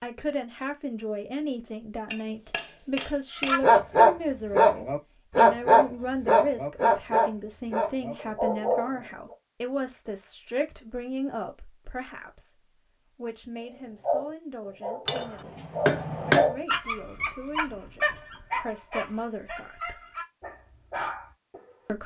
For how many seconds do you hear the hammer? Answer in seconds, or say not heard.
3 s.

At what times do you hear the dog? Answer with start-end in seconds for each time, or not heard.
3.5-8.9, 14.0-21.8.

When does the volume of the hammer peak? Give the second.
16 s.